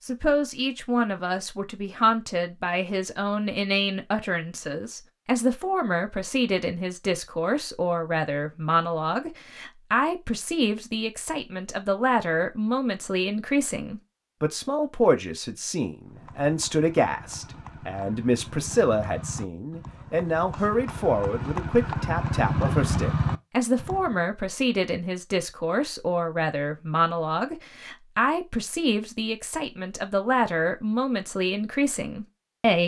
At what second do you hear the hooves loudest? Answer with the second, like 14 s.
23 s.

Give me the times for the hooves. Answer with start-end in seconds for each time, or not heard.
16.1-24.2.